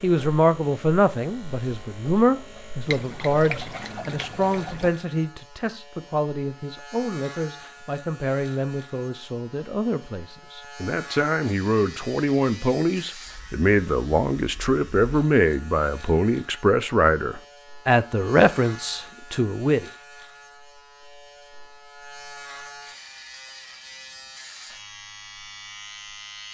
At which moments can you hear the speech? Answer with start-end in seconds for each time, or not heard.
0.0-19.9.